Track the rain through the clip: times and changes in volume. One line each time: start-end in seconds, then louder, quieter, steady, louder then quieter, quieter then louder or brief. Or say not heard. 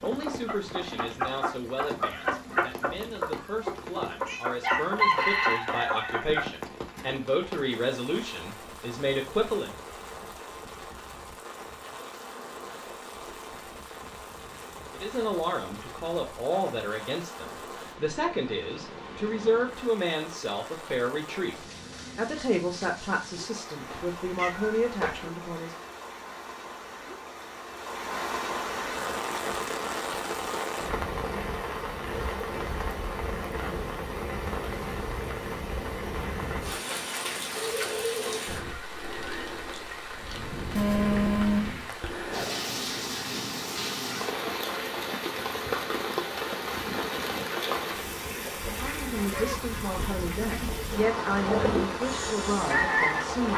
0.0-53.5 louder.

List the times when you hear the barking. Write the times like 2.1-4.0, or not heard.
not heard.